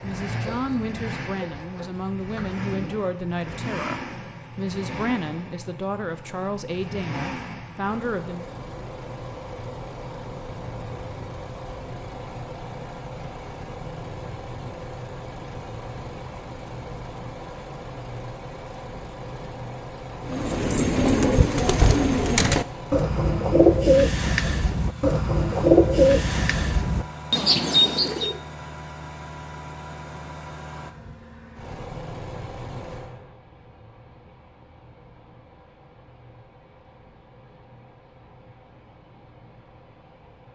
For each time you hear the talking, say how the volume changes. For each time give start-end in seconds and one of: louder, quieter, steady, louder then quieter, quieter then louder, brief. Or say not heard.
0.0-8.5 steady.